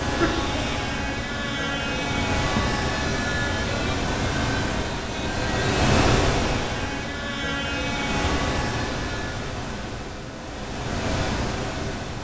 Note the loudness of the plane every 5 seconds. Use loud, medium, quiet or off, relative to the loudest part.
loud, loud, off.